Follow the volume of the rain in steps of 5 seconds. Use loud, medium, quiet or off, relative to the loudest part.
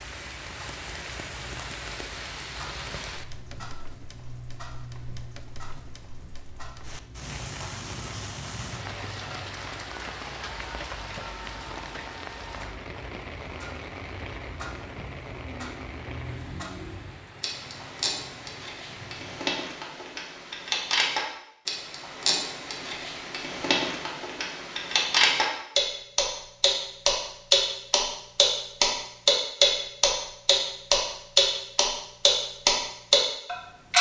loud, loud, loud, medium, off, off, off.